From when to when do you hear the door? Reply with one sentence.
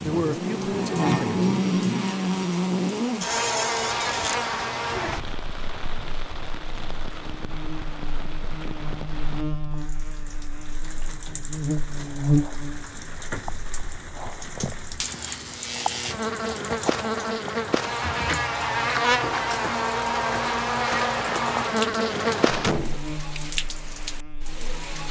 The door can be heard from 3.2 to 4.4 s and from 21.1 to 23.0 s.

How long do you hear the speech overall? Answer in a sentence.
You can hear the speech for 2 seconds altogether.